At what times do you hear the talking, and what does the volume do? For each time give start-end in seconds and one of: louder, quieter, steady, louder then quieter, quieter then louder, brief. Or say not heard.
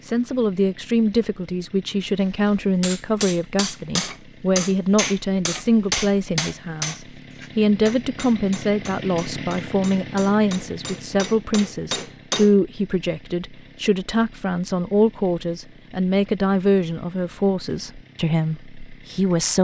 0.1-19.5 steady.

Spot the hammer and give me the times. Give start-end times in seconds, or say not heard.
2.8-12.6.